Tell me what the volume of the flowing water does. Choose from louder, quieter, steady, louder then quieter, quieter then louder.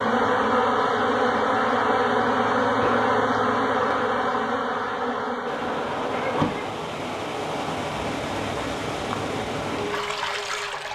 steady.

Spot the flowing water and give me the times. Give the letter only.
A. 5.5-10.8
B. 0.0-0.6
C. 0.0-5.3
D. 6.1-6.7
A.